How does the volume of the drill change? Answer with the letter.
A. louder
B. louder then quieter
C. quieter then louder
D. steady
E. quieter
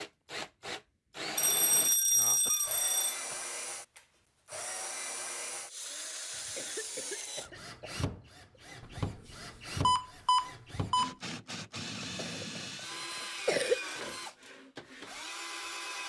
D.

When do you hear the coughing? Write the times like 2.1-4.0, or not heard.
2.4-3.5, 6.3-8.6, 12.2-13.8.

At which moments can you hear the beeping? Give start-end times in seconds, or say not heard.
1.4-3.1, 8.8-11.2.